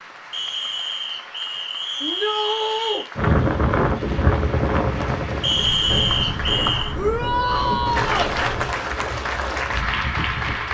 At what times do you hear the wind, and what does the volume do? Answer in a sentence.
You can hear the wind from 3.1 to 10.6 s, getting quieter.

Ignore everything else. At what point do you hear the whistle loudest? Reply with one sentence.
The volume of the whistle peaks at 6 seconds.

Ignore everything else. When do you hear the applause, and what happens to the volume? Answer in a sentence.
You can hear the applause from 0.0 to 10.6 s, getting louder.